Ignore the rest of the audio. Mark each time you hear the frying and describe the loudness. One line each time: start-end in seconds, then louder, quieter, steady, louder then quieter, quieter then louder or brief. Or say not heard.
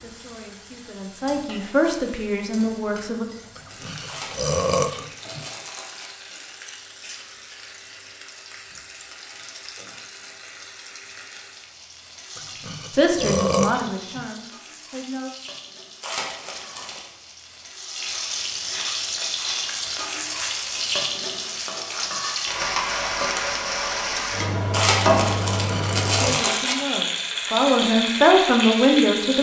0.0-29.3 louder.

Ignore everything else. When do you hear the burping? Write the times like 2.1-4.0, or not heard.
3.5-5.5, 12.3-14.2, 25.6-26.4.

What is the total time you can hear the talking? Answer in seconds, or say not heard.
9 s.